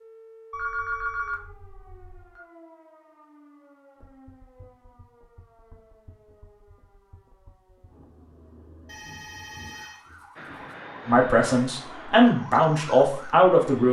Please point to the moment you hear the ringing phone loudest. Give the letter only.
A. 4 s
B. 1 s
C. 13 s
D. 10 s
B.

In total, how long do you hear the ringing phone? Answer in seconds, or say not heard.
4 s.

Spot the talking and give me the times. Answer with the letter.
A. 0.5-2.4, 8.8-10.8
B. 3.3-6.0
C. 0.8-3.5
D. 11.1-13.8
D.